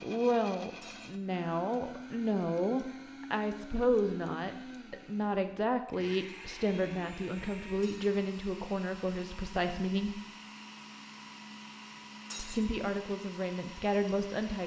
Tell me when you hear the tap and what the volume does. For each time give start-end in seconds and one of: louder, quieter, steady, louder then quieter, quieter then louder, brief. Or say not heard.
not heard.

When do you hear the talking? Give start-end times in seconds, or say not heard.
0.0-10.2, 12.3-14.6.